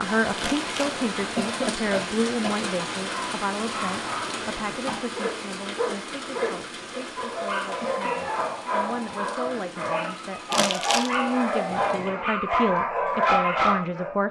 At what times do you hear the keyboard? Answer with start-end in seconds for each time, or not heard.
not heard.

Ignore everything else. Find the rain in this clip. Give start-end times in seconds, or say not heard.
0.0-12.1.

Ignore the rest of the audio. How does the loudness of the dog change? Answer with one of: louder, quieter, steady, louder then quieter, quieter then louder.
louder.